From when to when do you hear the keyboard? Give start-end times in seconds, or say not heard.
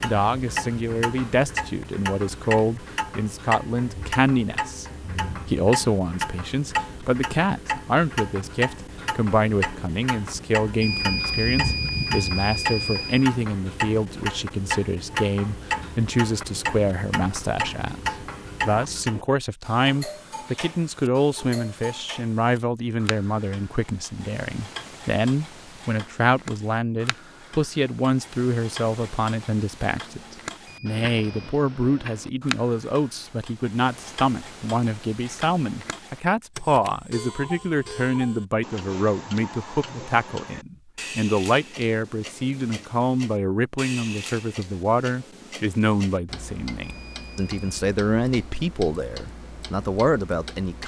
not heard.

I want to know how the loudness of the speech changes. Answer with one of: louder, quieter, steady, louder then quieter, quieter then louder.
steady.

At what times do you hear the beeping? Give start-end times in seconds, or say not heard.
10.8-13.2, 30.6-31.6, 46.8-47.9.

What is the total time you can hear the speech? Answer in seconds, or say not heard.
50 s.